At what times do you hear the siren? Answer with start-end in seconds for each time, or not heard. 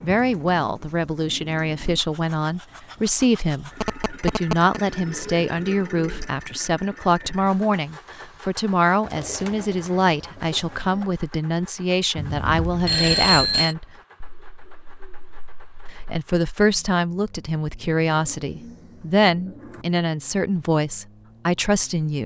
not heard.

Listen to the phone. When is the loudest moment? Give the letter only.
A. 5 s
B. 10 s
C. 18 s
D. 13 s
D.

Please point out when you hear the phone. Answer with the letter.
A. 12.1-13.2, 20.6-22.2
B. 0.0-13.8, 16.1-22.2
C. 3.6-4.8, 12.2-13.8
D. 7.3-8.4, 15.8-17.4
C.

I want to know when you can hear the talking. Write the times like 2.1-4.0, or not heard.
0.0-13.8, 16.1-22.2.